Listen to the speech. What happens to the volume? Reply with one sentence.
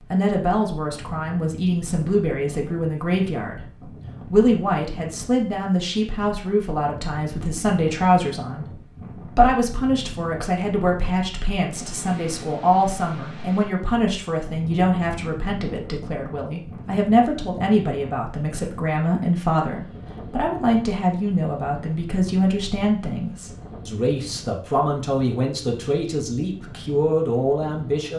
The volume of the speech stays about the same.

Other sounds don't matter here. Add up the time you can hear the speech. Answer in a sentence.
The speech can be heard for 28 seconds in total.